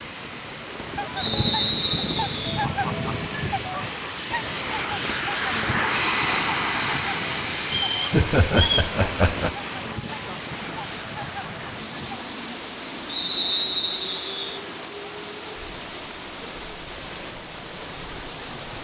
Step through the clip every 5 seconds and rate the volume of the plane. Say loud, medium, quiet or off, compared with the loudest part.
medium, loud, quiet, quiet.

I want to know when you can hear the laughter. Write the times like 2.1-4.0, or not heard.
8.1-9.6.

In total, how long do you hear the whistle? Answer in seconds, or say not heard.
4 s.